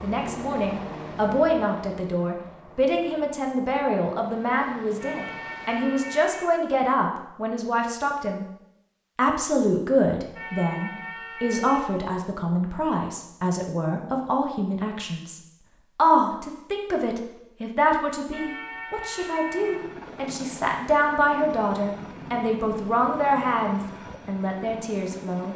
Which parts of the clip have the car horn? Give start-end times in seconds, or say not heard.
5.0-6.5, 10.3-11.8, 18.3-19.8.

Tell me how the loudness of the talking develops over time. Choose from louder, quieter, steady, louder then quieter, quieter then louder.
steady.